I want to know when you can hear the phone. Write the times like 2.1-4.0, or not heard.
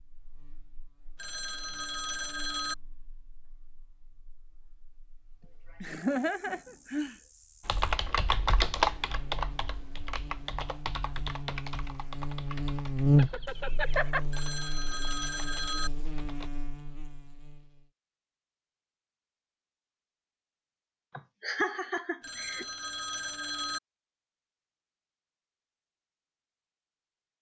1.1-2.8, 14.3-15.9, 22.2-23.8.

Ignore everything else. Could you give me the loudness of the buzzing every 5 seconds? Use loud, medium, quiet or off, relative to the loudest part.
quiet, quiet, loud, quiet, off, off.